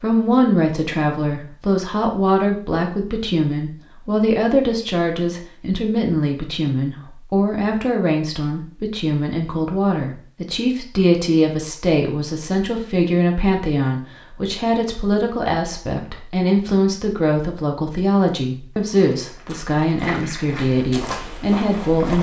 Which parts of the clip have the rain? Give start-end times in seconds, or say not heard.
not heard.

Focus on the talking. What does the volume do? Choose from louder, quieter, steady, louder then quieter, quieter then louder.
steady.